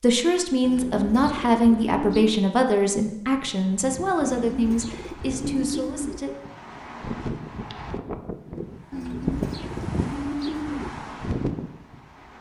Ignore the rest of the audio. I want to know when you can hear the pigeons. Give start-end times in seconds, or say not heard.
0.6-2.4, 4.2-6.2, 8.9-10.9.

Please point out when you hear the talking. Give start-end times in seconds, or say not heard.
0.0-6.3.